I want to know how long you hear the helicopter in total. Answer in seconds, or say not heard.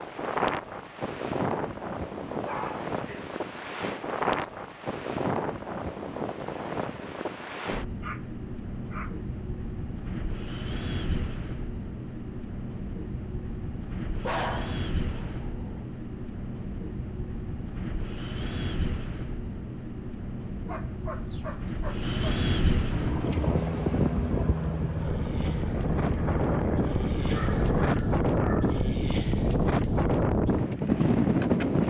5 s.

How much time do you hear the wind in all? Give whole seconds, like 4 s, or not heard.
32 s.